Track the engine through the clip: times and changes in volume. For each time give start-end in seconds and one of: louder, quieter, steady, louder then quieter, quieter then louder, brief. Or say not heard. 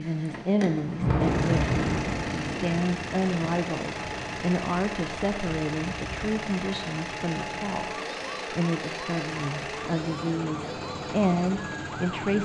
0.0-12.4 steady.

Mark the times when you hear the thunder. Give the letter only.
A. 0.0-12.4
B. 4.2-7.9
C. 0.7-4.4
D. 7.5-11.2
C.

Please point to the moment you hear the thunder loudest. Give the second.
1 s.